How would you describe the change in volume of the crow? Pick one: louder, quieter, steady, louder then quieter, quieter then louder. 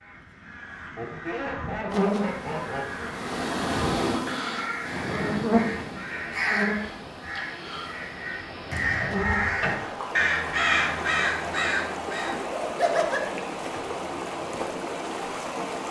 louder.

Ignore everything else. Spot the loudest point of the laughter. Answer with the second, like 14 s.
13 s.